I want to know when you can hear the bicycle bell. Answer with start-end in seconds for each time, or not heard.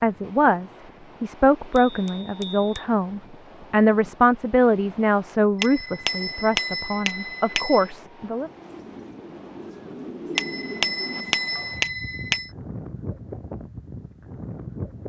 1.7-2.9, 5.6-7.8, 10.3-12.5.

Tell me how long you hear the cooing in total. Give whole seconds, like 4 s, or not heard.
3 s.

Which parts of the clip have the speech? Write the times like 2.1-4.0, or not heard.
0.0-8.5.